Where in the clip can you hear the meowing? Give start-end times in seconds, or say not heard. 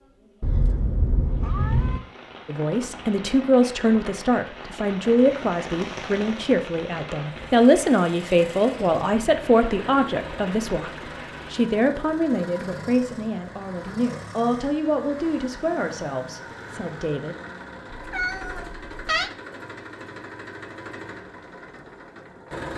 0.4-2.0, 17.9-19.3.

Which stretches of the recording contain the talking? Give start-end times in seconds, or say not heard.
2.5-17.4.